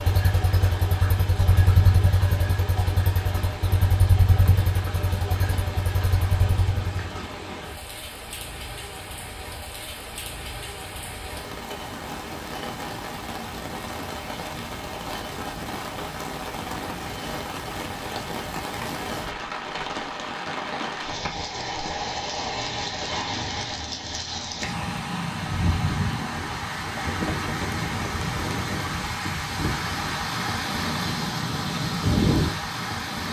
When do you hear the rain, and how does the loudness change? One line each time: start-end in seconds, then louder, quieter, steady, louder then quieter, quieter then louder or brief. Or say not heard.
0.0-33.2 louder.